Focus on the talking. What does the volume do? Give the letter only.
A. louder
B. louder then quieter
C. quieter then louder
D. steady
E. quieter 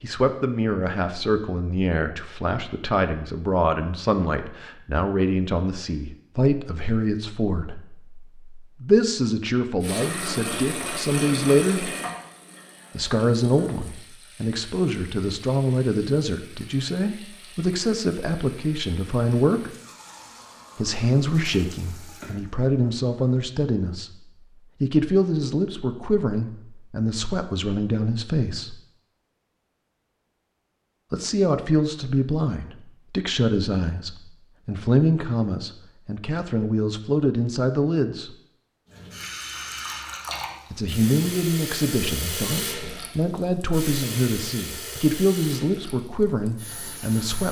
D.